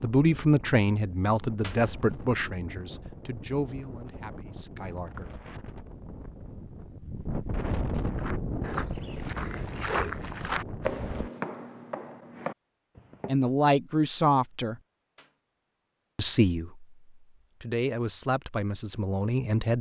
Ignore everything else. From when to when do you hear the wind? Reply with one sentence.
The wind can be heard from 0.0 to 11.3 s.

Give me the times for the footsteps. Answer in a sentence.
The footsteps can be heard from 8.1 to 13.5 s.